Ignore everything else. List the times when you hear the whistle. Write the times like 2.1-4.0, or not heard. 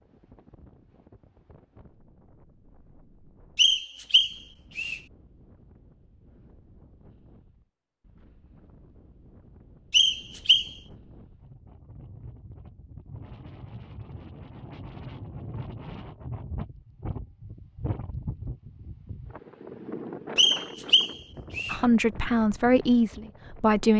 3.5-5.0, 9.9-10.7, 20.4-21.8.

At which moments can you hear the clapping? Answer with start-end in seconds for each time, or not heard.
not heard.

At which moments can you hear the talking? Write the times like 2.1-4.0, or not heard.
21.7-23.9.